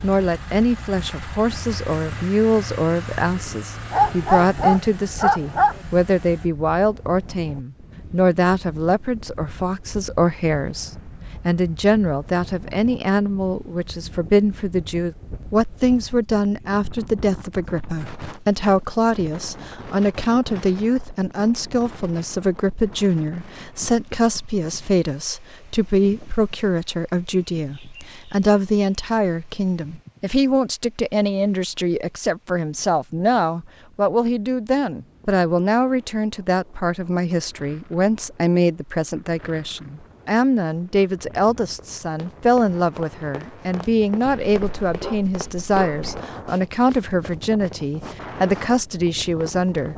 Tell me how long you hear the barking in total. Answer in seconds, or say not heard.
4 s.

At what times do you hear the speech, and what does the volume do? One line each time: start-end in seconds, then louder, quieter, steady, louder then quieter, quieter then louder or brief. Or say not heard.
0.0-49.9 steady.